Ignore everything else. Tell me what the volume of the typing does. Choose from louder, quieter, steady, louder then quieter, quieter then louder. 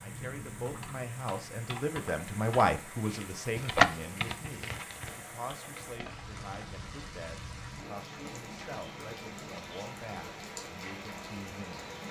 louder then quieter.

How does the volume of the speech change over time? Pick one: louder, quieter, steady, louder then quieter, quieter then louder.
quieter.